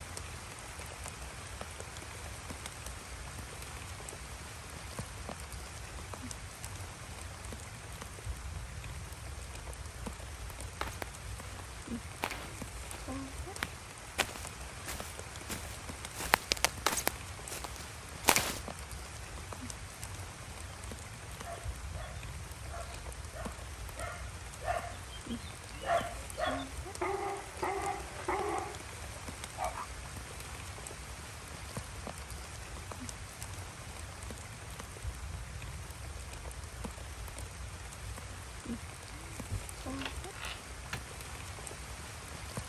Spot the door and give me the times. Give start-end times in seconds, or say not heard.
39.5-41.0.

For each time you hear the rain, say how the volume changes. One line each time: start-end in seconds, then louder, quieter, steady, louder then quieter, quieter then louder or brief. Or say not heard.
0.0-42.6 steady.